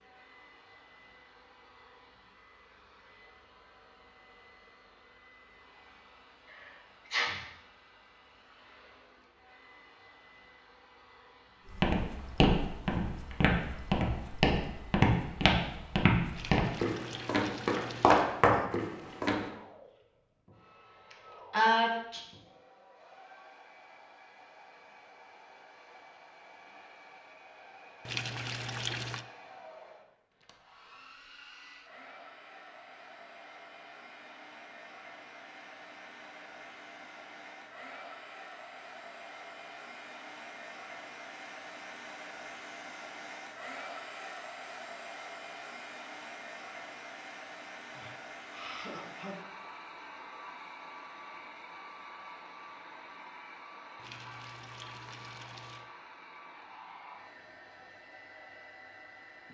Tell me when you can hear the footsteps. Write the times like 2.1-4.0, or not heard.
11.7-19.4.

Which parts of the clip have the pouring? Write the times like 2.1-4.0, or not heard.
16.3-18.2, 28.1-29.2, 54.0-55.9.